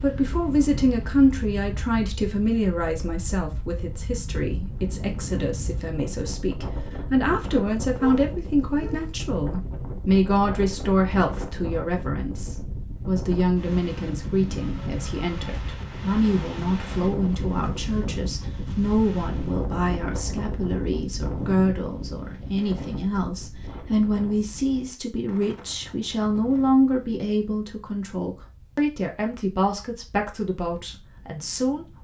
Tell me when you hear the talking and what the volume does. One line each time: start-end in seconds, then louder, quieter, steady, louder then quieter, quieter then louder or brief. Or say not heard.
0.0-31.9 steady.